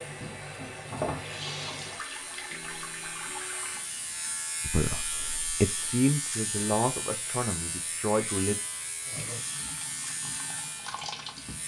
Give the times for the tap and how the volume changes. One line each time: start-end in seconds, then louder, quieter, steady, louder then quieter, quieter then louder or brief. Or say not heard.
0.0-4.5 quieter
9.0-11.6 brief.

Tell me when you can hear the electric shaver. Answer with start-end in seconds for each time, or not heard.
0.0-11.6.